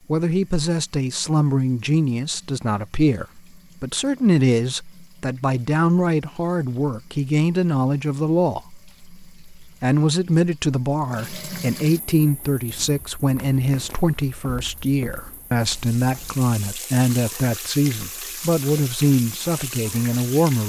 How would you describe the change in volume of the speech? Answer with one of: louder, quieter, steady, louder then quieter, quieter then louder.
steady.